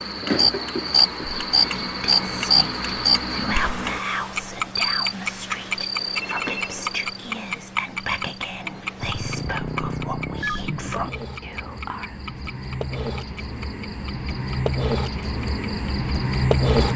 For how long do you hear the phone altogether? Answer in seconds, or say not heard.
2 s.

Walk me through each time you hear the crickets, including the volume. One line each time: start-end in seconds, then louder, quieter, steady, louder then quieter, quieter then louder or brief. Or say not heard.
0.0-16.9 quieter then louder.